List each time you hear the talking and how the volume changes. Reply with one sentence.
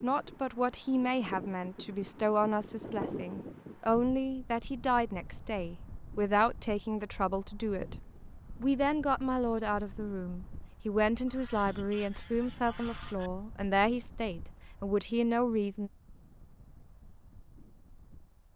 You can hear the talking from 0.0 to 15.9 s, at a steady volume.